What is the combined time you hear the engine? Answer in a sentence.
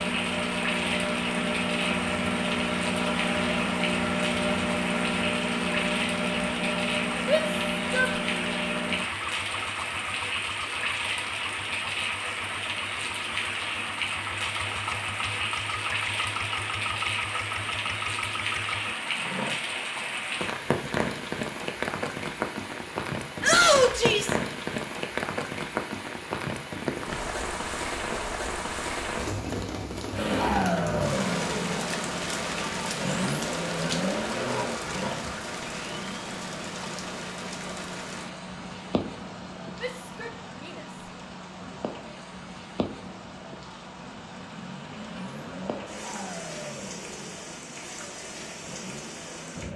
You can hear the engine for 39 seconds altogether.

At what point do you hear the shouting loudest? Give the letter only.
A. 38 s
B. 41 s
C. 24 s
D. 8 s
C.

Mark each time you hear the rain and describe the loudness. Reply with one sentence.
You can hear the rain from 0.0 to 49.7 s, getting quieter.